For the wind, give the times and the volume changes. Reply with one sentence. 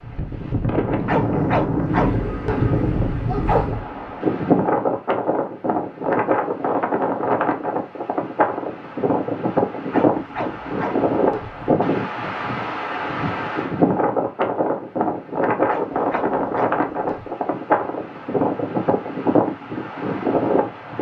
The wind can be heard from 0.0 to 20.9 s, at a steady volume.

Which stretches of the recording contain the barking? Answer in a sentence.
The barking can be heard from 1.1 to 3.9 s, from 9.9 to 11.7 s and from 15.7 to 17.3 s.